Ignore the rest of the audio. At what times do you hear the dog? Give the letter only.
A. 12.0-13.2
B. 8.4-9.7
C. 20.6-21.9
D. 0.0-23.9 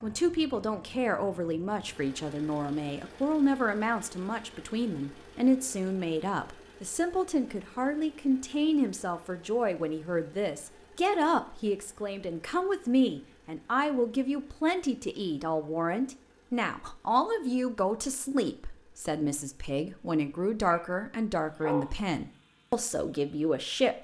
C.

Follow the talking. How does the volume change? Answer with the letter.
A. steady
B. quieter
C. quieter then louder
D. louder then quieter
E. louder
A.